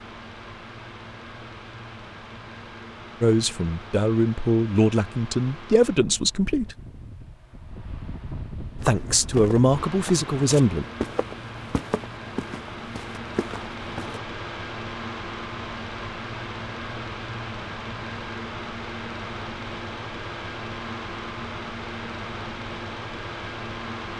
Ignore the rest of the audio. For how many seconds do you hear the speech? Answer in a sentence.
The speech can be heard for 6 seconds in total.